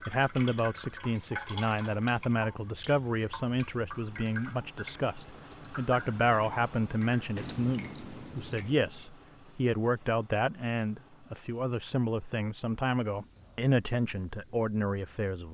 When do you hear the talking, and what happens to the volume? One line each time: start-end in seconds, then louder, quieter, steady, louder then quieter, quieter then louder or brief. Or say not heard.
0.1-15.4 steady.